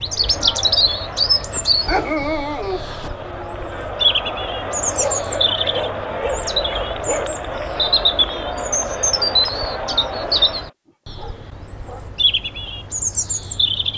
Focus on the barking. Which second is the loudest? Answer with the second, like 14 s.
2 s.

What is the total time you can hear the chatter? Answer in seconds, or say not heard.
11 s.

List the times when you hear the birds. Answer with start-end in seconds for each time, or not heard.
0.0-13.9.